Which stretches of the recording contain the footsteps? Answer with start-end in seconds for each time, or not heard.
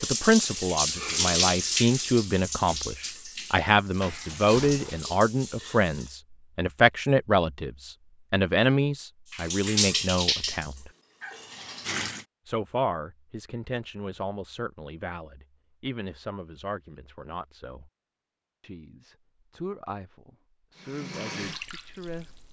not heard.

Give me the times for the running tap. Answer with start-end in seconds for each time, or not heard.
0.0-6.1, 9.3-12.2, 20.8-22.4.